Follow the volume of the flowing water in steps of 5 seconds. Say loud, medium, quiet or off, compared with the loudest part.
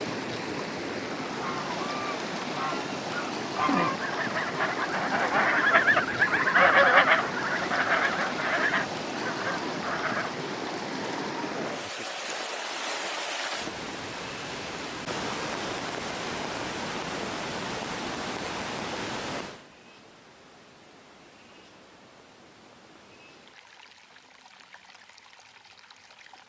loud, loud, loud, loud, quiet, quiet.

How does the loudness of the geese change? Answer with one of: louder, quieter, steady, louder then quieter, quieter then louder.
louder then quieter.